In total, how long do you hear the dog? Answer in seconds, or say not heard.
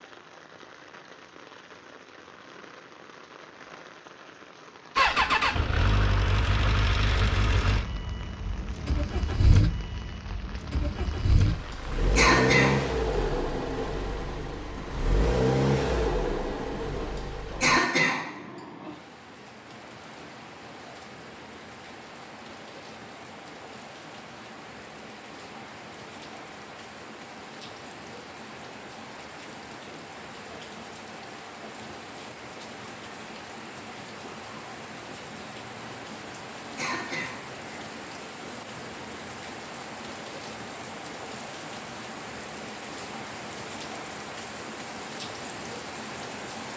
not heard.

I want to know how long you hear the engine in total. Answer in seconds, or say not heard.
13 s.